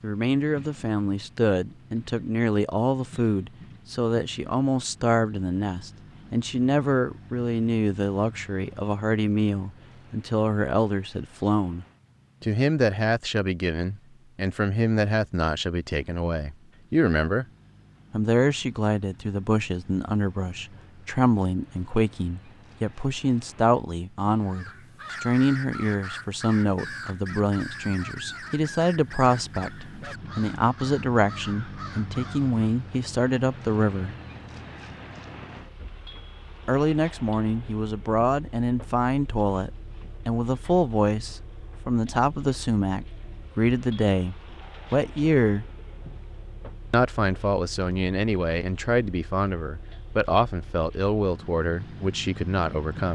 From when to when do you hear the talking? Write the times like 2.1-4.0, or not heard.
0.0-17.4, 18.1-34.1, 36.6-45.6, 46.9-53.0.